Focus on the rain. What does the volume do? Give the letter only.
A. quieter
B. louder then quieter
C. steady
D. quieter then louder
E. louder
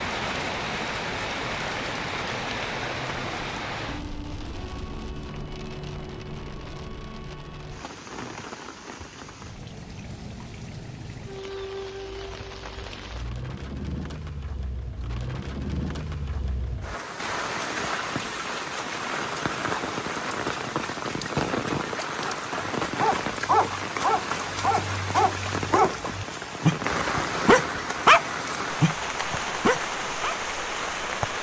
D.